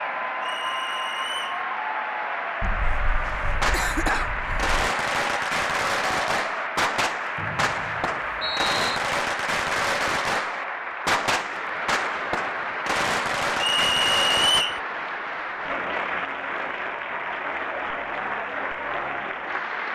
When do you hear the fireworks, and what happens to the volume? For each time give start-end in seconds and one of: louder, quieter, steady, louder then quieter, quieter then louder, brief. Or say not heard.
3.2-14.7 steady.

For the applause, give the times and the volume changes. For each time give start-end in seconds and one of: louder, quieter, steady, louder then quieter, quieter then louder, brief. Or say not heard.
0.0-19.8 steady.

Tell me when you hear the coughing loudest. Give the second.
4 s.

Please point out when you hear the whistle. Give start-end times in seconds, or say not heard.
0.4-1.6, 7.3-9.0, 13.6-14.8.